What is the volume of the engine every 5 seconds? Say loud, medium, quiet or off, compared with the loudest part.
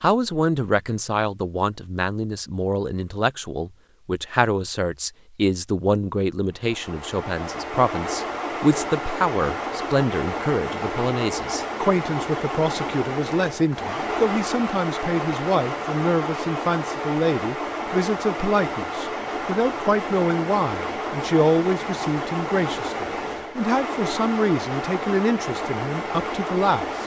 off, loud, loud, loud, loud, loud.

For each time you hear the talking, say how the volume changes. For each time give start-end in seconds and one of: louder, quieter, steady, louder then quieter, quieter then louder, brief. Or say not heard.
0.0-27.0 steady.